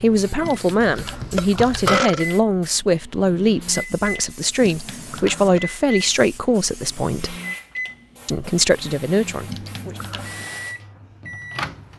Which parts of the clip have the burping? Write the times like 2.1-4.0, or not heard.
0.4-2.2, 4.6-5.6, 9.4-10.3.